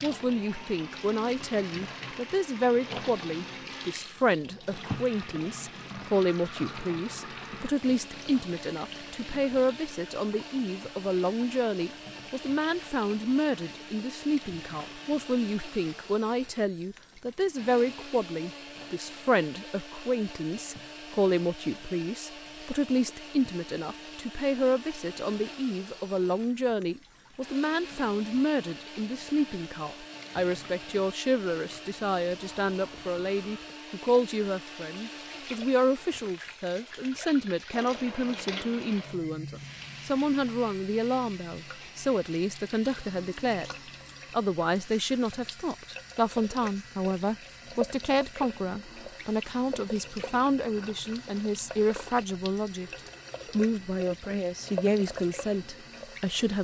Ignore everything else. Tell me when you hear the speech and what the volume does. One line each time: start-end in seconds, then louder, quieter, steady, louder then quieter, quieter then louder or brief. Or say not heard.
0.0-56.6 steady.